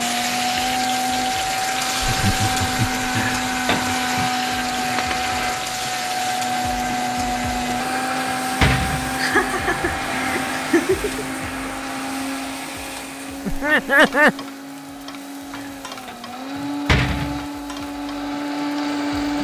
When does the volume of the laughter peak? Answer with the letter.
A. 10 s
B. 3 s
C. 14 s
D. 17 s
C.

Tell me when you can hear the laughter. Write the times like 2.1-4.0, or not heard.
2.0-3.2, 9.2-11.2, 13.4-14.3.